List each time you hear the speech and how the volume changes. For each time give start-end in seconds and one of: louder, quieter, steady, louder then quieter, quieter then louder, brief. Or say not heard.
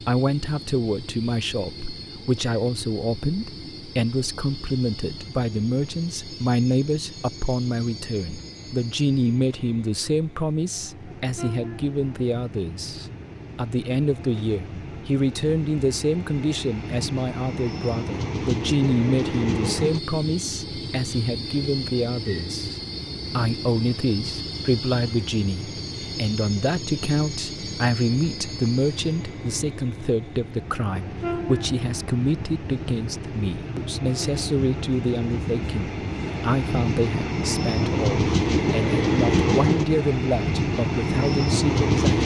0.1-42.2 steady.